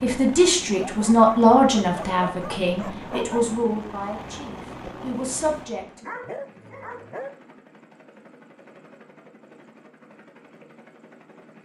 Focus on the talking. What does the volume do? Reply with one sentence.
The loudness of the talking goes down.